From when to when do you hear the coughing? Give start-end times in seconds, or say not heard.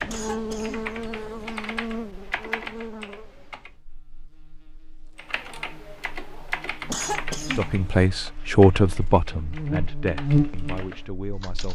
0.1-1.6, 6.8-8.1.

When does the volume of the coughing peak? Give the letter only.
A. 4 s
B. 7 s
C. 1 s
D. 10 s
B.